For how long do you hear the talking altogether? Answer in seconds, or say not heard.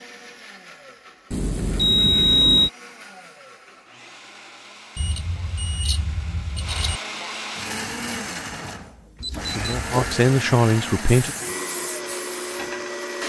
2 s.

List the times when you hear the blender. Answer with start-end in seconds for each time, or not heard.
0.0-13.2.